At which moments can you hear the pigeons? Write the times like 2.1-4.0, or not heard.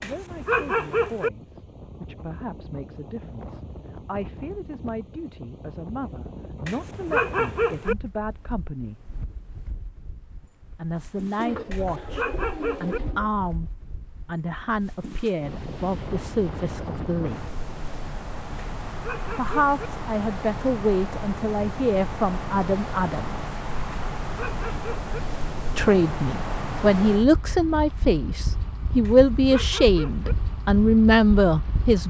11.3-13.3.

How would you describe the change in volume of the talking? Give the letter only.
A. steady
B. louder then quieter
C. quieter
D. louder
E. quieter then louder
D.